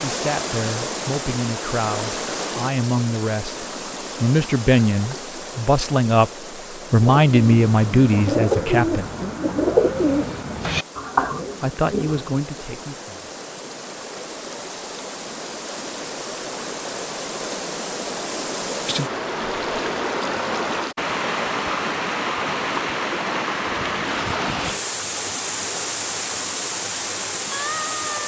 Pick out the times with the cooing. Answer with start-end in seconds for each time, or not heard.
7.0-12.4.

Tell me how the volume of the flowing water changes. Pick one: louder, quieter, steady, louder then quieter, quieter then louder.
quieter then louder.